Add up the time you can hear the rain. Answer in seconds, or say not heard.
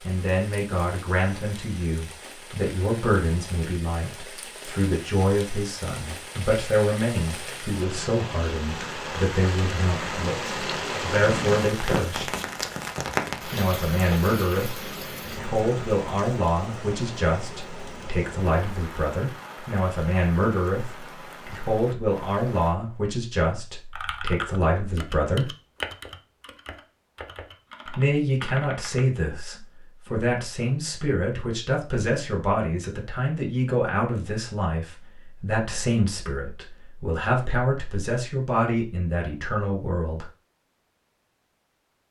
23 s.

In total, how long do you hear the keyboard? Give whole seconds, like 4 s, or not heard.
5 s.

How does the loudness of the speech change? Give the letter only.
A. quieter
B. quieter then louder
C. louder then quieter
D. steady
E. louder
D.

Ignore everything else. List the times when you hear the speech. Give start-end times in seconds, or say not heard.
0.0-12.2, 13.5-25.5, 27.9-40.2.